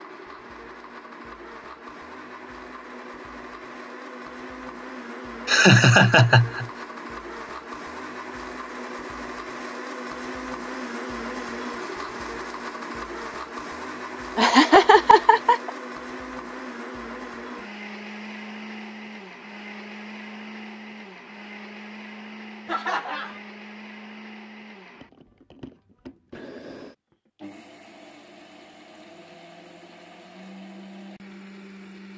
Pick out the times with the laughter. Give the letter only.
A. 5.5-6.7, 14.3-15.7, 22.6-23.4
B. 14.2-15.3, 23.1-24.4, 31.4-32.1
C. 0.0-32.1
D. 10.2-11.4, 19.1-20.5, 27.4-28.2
A.